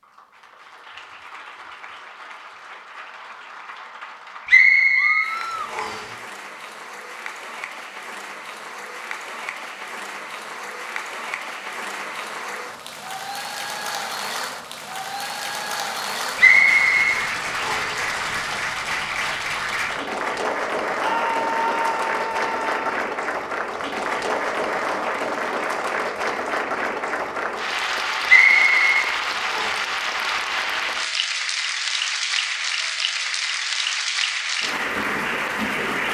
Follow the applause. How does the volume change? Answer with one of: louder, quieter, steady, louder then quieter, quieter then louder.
louder.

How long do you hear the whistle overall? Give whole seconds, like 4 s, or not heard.
5 s.